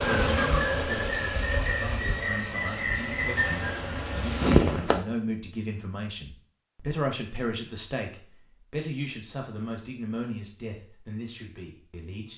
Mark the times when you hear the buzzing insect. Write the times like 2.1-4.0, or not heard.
0.0-5.0.